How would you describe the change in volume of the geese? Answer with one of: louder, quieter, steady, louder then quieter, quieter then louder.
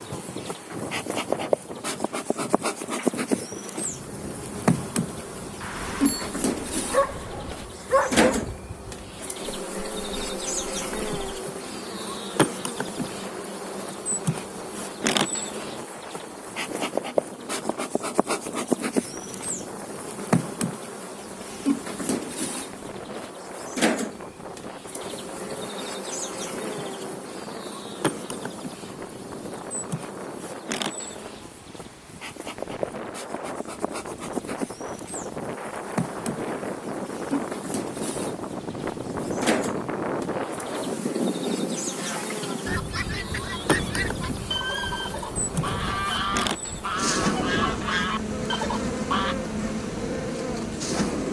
louder.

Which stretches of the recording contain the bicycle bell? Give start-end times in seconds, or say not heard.
5.6-6.3.